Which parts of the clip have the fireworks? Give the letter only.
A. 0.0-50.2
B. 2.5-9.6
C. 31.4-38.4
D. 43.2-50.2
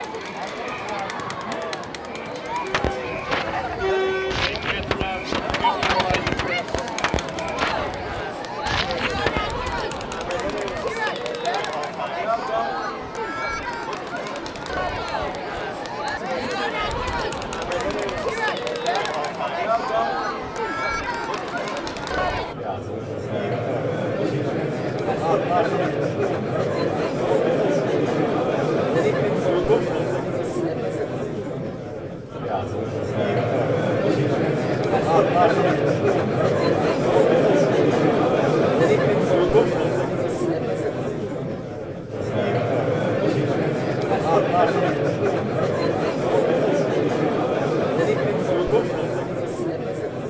B.